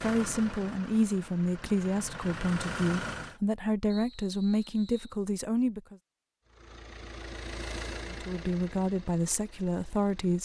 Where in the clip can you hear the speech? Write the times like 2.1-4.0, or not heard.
0.0-6.0, 8.1-10.4.